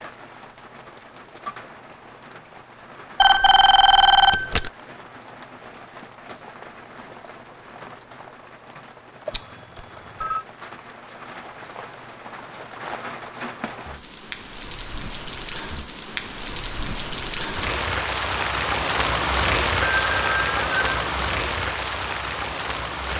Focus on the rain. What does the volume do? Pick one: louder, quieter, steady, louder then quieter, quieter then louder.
louder.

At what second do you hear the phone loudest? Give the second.
4 s.